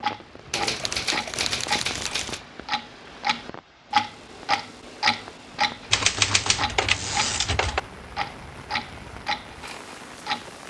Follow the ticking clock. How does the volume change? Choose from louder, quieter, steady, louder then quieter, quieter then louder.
louder then quieter.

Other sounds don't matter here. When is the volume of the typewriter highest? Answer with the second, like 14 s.
6 s.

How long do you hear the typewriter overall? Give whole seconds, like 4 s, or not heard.
4 s.